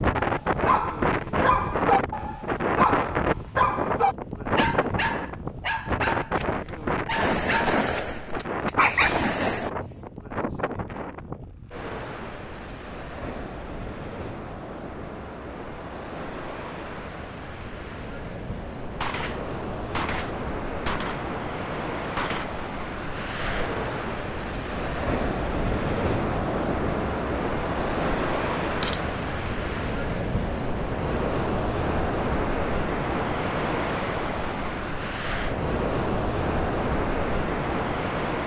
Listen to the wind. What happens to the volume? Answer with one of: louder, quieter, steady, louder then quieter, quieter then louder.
quieter then louder.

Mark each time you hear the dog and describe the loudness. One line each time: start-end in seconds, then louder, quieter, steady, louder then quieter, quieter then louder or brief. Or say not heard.
0.1-10.1 quieter then louder.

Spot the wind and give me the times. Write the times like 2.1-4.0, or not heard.
0.0-38.4.